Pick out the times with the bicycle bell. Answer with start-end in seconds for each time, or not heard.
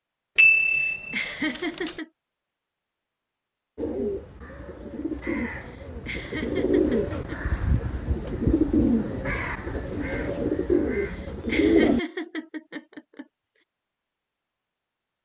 0.3-1.9.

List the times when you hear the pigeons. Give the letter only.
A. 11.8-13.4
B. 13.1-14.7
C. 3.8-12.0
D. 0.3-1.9
C.